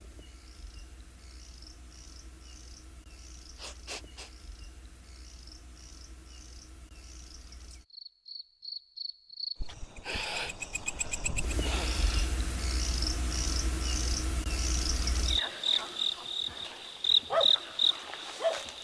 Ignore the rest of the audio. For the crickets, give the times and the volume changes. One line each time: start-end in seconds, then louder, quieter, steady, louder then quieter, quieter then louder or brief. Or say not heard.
0.0-18.7 louder.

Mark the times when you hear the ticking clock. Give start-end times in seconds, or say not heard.
not heard.